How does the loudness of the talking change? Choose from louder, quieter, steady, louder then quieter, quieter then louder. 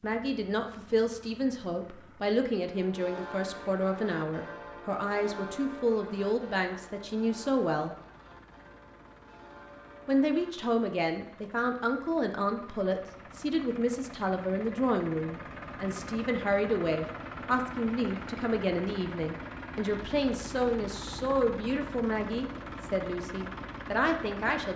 steady.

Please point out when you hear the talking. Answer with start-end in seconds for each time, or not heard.
0.0-8.0, 10.1-24.7.